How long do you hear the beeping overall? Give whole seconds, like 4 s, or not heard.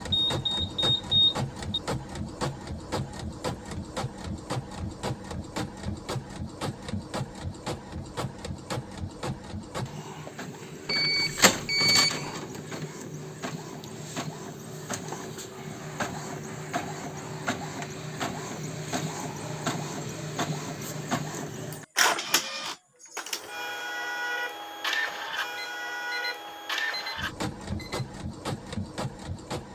6 s.